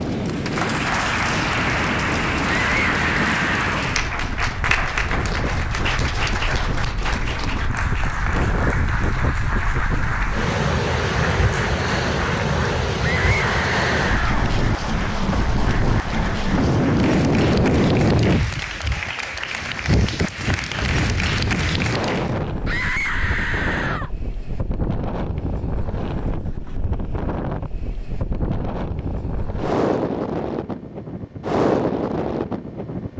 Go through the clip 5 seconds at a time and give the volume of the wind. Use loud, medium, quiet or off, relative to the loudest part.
medium, medium, loud, loud, medium, medium, loud.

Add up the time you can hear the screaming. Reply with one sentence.
The screaming can be heard for 4 seconds in total.